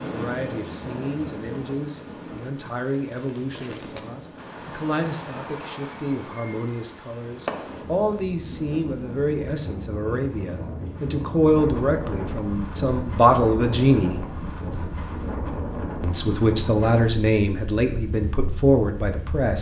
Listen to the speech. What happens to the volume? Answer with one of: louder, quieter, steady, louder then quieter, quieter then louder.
louder.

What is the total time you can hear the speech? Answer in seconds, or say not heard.
18 s.